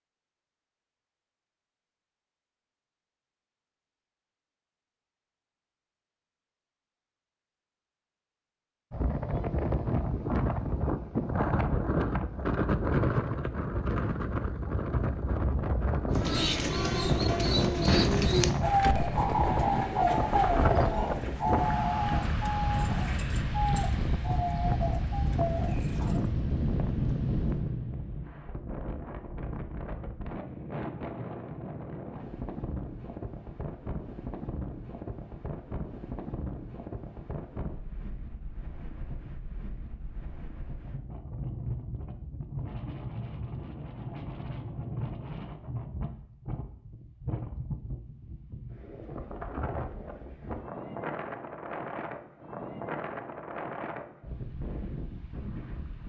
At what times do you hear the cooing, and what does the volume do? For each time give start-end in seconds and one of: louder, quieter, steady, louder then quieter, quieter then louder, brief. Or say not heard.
16.1-26.2 quieter.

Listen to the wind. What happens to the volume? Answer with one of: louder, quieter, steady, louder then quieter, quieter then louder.
quieter.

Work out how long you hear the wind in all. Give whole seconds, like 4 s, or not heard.
47 s.